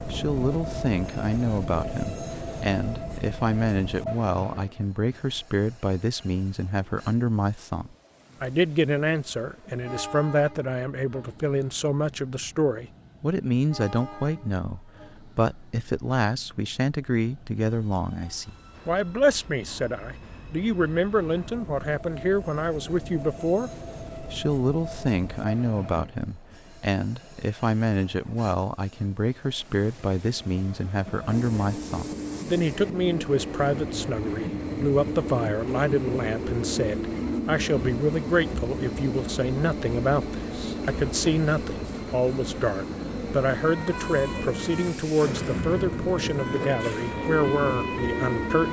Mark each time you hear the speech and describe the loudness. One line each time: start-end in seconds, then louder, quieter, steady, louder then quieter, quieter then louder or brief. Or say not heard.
0.1-23.7 steady
24.3-48.6 steady.